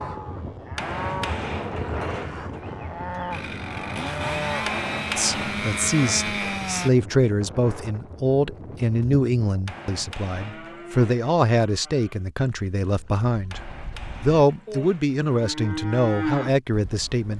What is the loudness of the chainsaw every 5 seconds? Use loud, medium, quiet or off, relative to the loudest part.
loud, loud, off, off.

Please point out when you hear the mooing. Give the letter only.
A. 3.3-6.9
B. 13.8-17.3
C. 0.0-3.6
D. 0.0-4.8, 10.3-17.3
D.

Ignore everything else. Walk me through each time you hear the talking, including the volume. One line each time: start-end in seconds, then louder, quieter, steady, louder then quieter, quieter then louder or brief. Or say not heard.
5.2-17.3 steady.